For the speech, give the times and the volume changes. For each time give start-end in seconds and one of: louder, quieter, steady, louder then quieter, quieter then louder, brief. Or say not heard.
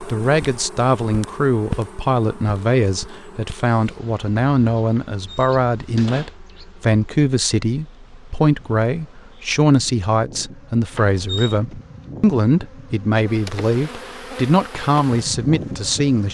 0.1-16.3 steady.